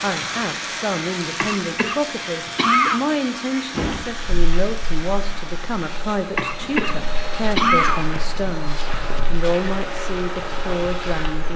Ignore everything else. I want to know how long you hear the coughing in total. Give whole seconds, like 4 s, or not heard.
3 s.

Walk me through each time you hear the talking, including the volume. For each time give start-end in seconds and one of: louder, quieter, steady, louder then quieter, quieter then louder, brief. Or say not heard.
0.0-11.5 steady.